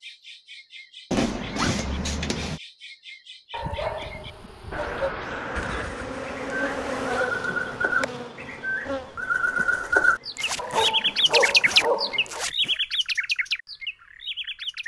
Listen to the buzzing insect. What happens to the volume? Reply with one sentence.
The loudness of the buzzing insect goes up, then down.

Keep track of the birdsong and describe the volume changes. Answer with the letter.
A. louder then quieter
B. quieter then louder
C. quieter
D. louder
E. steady
A.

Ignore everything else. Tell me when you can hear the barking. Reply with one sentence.
You can hear the barking from 3.5 to 5.2 s and from 10.6 to 12.4 s.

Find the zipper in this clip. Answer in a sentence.
The zipper can be heard from 1.1 to 2.6 s, from 5.5 to 7.3 s and from 10.3 to 12.8 s.